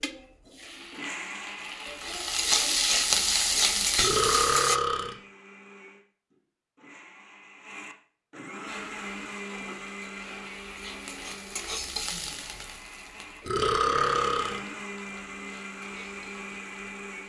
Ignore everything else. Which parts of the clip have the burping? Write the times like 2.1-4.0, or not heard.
4.0-5.2, 13.4-14.6.